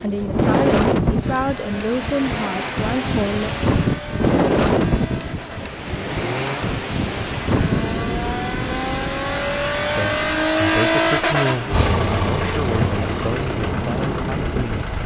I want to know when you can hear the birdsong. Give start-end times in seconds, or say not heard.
not heard.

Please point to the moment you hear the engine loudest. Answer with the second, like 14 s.
11 s.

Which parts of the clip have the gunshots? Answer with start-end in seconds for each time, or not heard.
not heard.